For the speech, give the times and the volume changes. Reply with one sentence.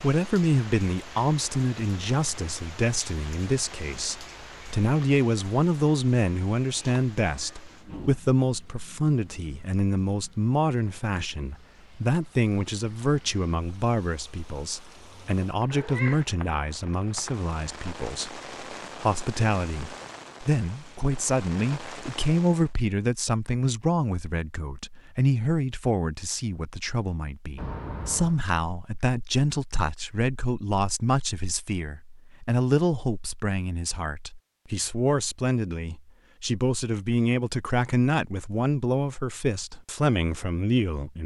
The speech can be heard from 0.0 to 41.2 s, at a steady volume.